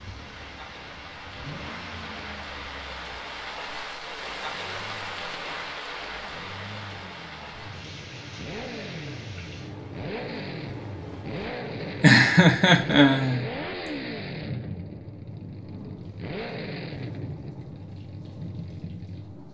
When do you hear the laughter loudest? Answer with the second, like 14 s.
12 s.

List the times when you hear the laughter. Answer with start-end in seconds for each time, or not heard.
12.0-13.4.